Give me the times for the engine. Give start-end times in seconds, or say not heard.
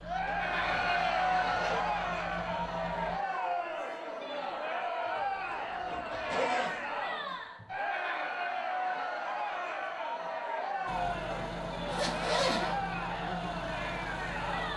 0.0-3.2, 10.8-14.7.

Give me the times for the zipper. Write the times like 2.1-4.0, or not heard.
0.2-2.6, 5.2-6.8, 11.8-12.8.